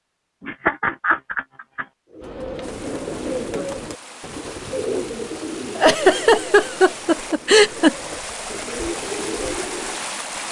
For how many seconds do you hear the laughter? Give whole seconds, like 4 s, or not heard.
4 s.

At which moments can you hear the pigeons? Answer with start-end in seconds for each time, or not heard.
2.1-10.1.